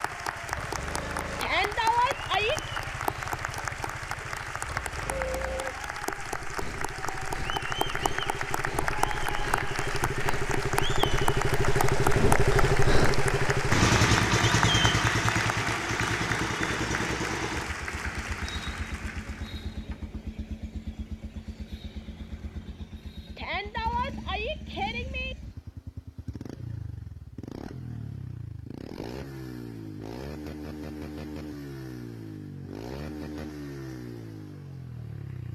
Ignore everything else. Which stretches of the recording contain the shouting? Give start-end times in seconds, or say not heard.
1.4-2.6, 23.4-25.4.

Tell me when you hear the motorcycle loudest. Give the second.
14 s.